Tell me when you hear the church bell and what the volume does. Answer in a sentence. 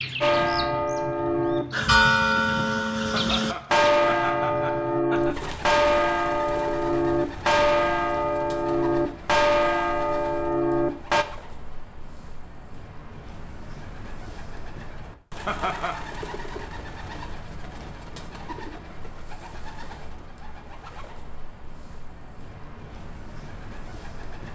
You can hear the church bell from 0.2 to 11.2 s, at a steady volume.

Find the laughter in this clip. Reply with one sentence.
The laughter can be heard from 3.1 to 5.3 s and from 15.4 to 16.1 s.